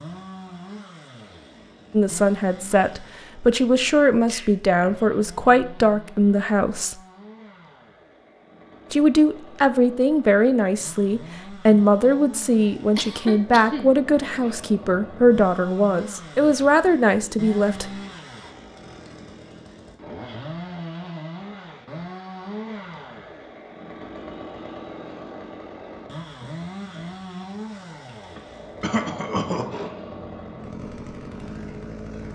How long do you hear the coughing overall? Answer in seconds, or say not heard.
3 s.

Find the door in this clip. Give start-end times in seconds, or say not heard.
not heard.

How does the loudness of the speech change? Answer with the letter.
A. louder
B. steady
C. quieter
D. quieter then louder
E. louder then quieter
B.